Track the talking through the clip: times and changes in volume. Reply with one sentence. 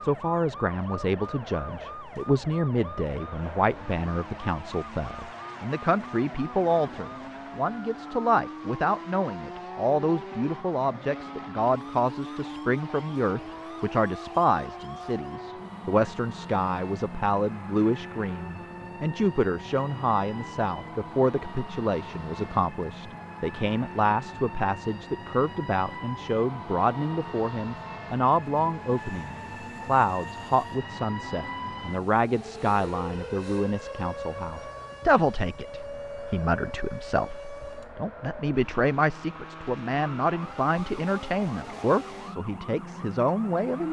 The talking can be heard from 0.0 to 43.8 s, at a steady volume.